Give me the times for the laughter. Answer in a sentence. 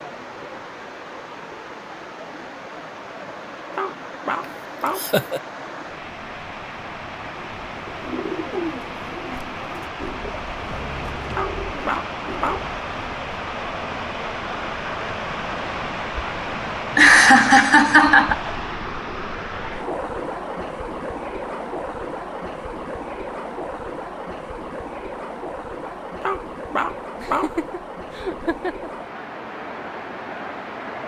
You can hear the laughter from 5.0 to 5.4 s, from 16.9 to 18.4 s and from 27.1 to 28.9 s.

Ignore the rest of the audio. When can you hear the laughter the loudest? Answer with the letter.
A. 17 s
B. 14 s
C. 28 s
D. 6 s
A.